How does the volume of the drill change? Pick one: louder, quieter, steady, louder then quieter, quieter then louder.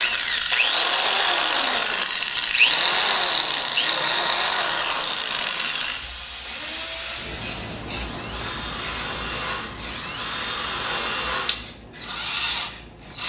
quieter then louder.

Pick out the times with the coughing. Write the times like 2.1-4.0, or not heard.
not heard.